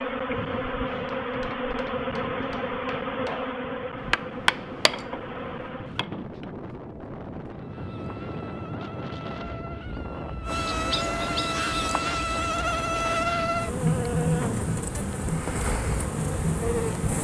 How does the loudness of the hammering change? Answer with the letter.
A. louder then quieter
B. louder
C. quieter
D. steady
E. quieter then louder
A.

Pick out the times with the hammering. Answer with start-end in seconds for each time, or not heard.
0.9-6.5.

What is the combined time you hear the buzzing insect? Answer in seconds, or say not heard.
16 s.